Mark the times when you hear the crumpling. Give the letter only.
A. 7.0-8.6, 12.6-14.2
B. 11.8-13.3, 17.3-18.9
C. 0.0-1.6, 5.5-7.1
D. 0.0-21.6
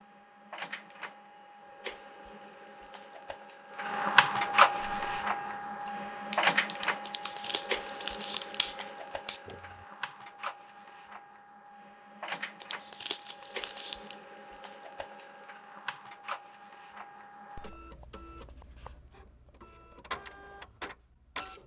A.